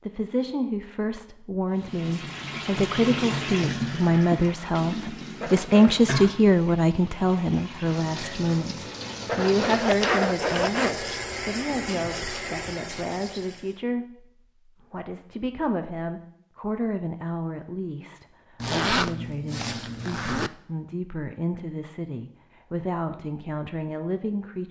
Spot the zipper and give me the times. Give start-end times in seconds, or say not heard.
5.4-6.0, 9.2-10.9, 18.6-20.5.